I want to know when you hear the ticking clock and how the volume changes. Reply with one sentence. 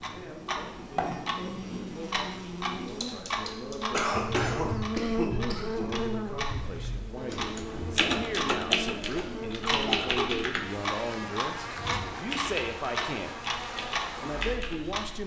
You can hear the ticking clock from 0.0 to 15.2 s, at a steady volume.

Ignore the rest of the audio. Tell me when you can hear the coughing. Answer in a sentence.
The coughing can be heard from 3.9 to 6.0 s and from 8.7 to 10.2 s.